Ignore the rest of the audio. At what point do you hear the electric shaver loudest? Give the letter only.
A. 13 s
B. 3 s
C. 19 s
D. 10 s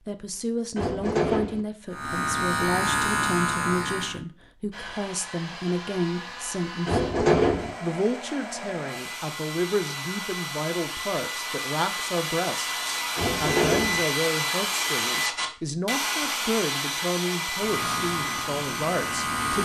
B.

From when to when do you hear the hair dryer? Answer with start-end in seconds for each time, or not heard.
4.7-19.6.